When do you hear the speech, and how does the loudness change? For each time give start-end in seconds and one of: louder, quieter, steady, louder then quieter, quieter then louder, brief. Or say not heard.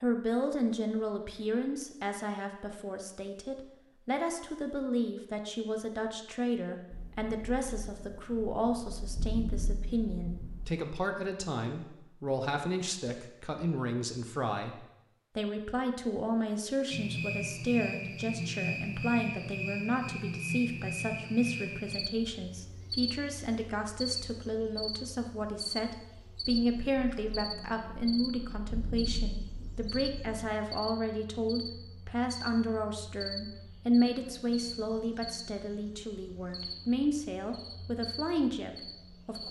0.0-39.4 steady.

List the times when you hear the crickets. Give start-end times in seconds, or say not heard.
16.9-39.4.